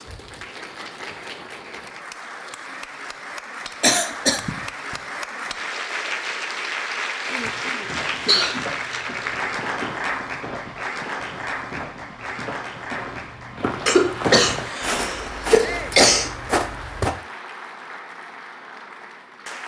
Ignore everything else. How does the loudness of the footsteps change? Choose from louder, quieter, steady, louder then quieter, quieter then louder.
louder.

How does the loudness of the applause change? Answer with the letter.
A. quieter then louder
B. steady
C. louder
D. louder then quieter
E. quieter
D.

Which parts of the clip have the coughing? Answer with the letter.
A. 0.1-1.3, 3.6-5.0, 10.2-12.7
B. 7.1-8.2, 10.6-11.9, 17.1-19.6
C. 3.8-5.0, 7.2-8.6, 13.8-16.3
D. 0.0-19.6
C.